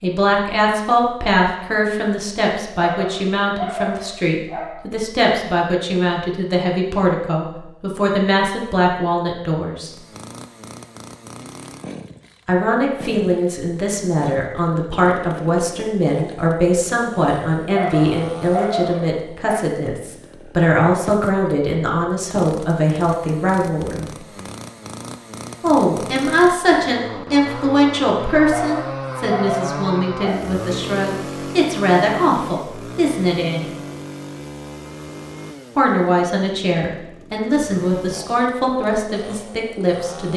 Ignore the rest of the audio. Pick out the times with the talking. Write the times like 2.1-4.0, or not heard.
0.0-9.9, 12.4-24.2, 25.6-33.6, 35.8-40.3.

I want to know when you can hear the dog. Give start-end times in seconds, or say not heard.
2.9-4.9, 17.7-19.6, 28.4-30.6.